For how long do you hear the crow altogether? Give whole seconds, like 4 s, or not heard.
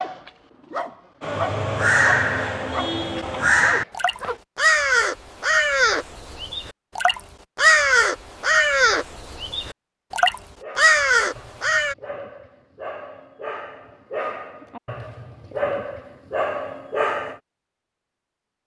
11 s.